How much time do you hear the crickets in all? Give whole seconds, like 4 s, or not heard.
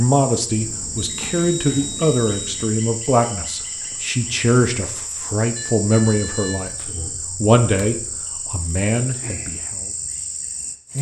11 s.